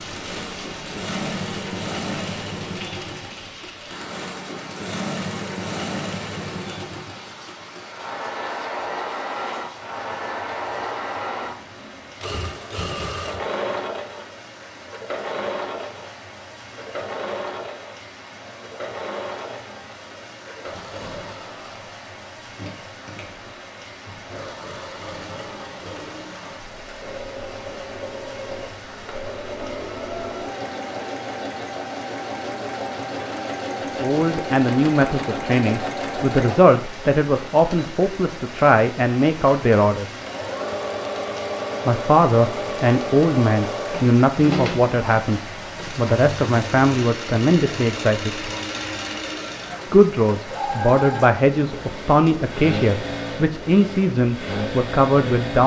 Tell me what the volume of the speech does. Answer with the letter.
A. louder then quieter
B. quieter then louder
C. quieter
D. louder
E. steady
E.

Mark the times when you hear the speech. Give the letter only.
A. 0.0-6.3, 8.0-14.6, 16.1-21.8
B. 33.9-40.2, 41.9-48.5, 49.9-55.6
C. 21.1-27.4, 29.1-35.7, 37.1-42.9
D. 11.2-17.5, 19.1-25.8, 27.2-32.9
B.